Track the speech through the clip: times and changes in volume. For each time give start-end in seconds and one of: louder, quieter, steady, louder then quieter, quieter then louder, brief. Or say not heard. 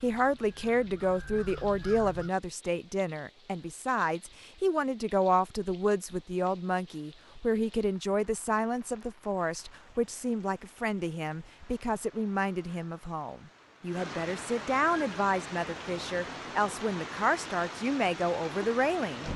0.0-19.2 steady.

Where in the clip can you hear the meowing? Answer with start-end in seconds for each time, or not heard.
not heard.